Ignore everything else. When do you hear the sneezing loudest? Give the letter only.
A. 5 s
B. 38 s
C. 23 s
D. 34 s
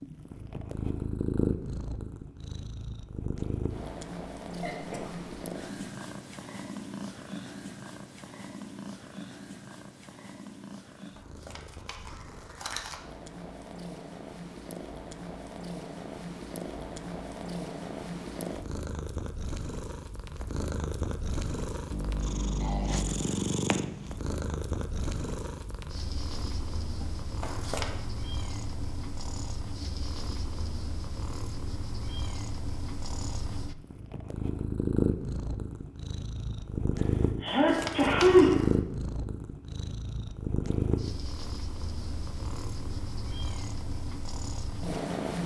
B.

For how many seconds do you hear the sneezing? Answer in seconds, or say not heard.
3 s.